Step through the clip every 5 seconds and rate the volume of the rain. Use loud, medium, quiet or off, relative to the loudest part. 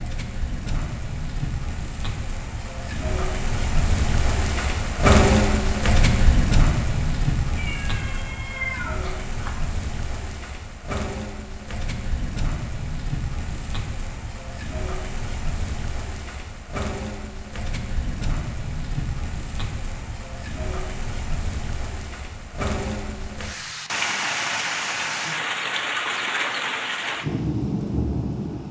medium, loud, medium, medium, medium, loud.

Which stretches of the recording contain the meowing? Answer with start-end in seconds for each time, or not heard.
7.5-9.5.